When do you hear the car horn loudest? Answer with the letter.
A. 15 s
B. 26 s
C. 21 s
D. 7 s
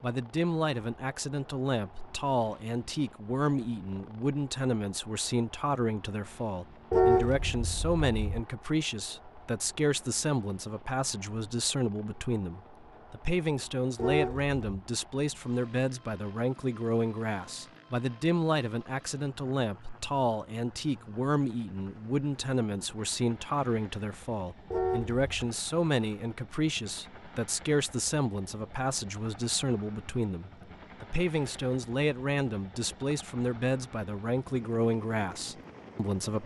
D.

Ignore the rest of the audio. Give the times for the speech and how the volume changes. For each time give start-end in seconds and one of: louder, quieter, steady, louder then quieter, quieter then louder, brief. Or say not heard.
0.0-36.4 steady.